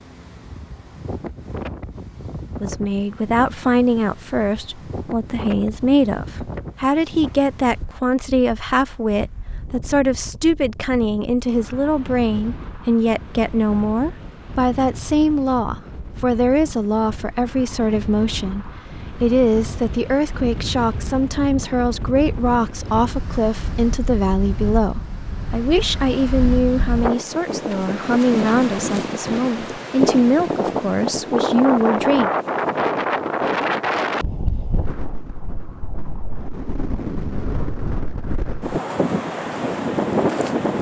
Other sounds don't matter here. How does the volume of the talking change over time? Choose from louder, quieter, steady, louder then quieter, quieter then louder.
steady.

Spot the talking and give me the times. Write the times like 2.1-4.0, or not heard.
2.6-32.3.